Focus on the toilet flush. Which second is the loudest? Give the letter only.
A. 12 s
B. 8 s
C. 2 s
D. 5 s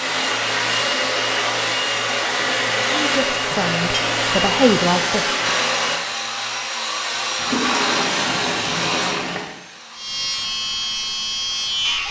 B.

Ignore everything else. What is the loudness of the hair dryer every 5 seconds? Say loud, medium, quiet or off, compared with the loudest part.
loud, loud, quiet.